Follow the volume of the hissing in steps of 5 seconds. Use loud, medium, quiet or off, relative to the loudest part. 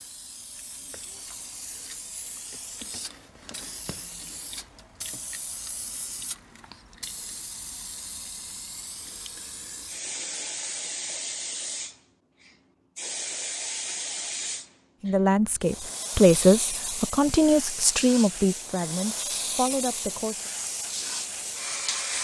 medium, medium, loud, loud, loud.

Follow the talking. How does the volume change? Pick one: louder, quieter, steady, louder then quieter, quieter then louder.
quieter.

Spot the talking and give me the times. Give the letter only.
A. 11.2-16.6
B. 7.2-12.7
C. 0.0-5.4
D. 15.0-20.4
D.